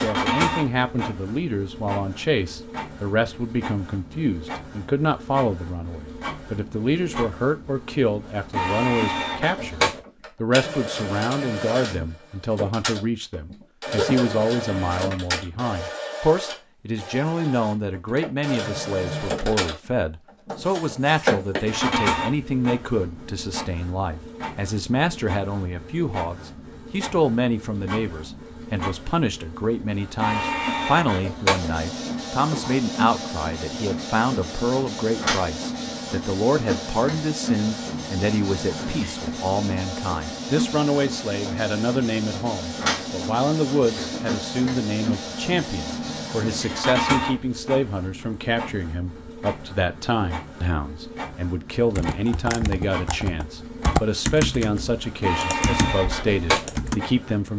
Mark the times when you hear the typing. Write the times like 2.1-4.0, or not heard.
52.0-57.0.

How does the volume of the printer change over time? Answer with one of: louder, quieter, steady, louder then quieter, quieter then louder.
steady.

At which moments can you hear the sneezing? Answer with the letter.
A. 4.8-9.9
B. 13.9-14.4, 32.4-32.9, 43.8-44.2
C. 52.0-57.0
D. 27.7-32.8
B.